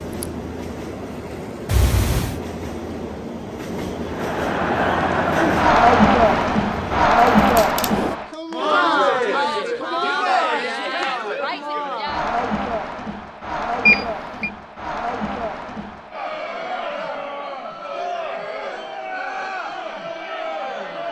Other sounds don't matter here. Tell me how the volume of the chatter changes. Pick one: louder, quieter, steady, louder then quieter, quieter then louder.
quieter.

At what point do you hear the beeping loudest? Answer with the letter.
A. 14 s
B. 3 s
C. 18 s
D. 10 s
A.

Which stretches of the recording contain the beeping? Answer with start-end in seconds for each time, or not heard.
1.6-2.4, 13.8-14.5.